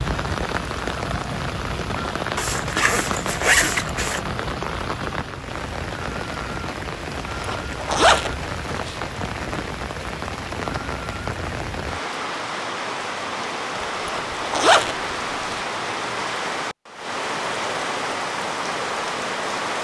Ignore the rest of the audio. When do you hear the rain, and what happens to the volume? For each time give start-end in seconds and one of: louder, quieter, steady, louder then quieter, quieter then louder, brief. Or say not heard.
0.0-19.7 steady.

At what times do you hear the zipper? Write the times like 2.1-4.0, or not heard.
2.4-4.2, 7.1-8.9, 13.8-15.6.